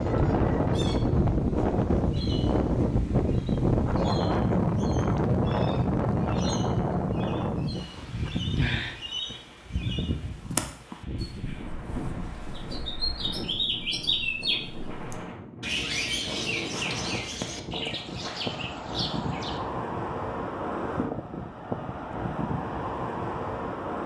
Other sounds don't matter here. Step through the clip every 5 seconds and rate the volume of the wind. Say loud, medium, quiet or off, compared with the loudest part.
loud, loud, quiet, medium, medium.